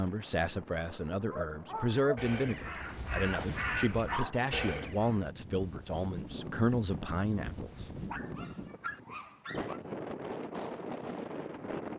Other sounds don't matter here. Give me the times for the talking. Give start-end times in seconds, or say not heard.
0.0-7.9.